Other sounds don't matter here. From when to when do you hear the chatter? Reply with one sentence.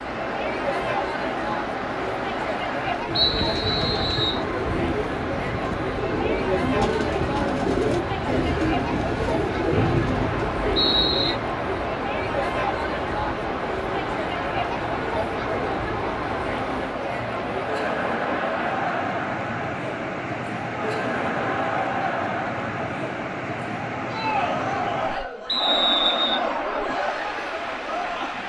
You can hear the chatter from 0.0 to 28.4 s.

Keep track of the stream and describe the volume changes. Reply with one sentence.
The loudness of the stream stays about the same.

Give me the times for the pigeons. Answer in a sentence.
You can hear the pigeons from 3.3 to 11.3 s.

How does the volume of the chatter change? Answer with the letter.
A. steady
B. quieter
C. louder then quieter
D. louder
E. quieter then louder
A.